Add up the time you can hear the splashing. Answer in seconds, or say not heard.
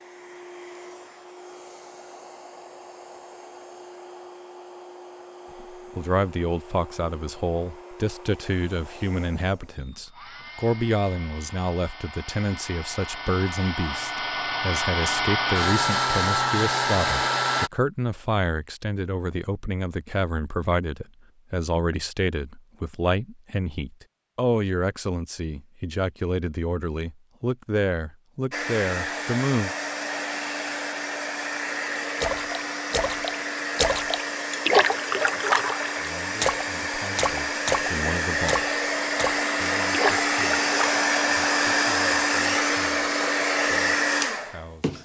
9 s.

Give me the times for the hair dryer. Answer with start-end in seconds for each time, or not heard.
0.0-17.7, 28.5-45.0.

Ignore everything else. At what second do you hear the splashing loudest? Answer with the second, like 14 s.
35 s.